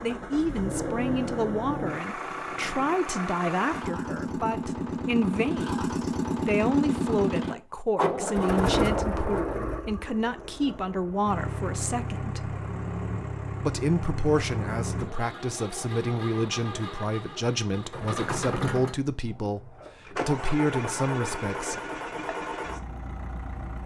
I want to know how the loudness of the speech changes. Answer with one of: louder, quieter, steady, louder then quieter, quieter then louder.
steady.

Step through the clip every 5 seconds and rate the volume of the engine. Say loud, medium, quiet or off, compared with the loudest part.
medium, loud, medium, medium, medium.